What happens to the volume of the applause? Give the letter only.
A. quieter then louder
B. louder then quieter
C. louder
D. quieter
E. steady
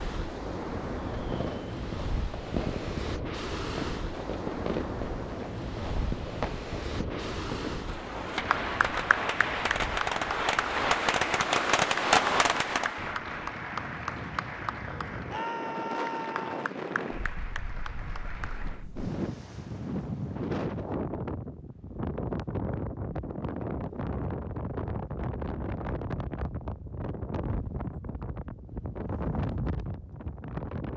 D.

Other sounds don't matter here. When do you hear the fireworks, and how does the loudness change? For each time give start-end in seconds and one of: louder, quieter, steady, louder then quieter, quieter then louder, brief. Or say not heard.
0.9-13.2 louder.